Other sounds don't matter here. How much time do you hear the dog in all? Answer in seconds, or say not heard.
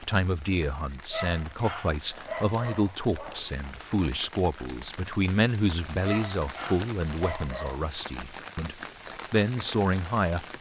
4 s.